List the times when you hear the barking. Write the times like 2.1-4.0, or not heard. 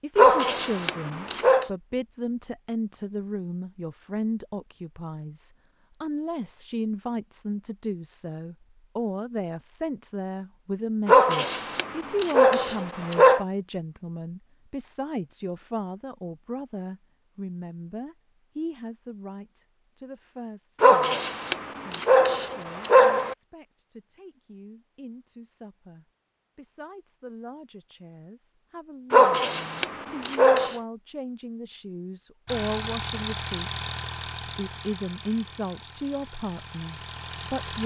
0.1-1.7, 11.1-13.4, 20.8-23.4, 29.1-30.8.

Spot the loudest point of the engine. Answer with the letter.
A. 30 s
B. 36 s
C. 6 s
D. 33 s
D.